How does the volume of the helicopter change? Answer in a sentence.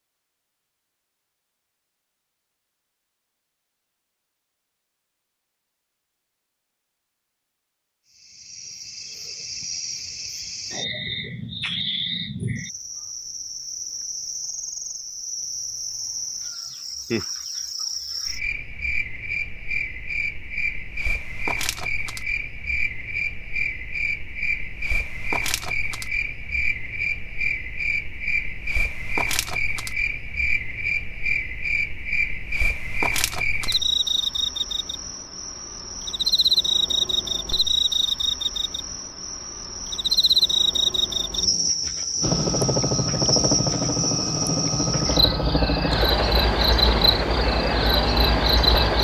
The volume of the helicopter stays about the same.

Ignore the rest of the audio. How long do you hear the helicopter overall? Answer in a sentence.
The helicopter can be heard for 7 seconds in total.